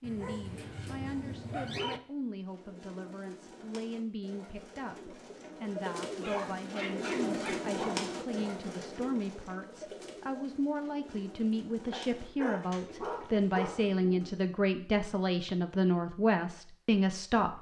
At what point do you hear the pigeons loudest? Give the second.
7 s.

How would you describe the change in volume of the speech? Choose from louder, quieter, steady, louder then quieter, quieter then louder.
louder.